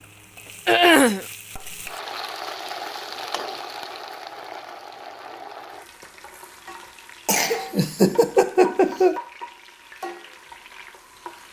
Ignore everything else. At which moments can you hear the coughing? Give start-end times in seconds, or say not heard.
0.7-1.2, 7.2-9.2.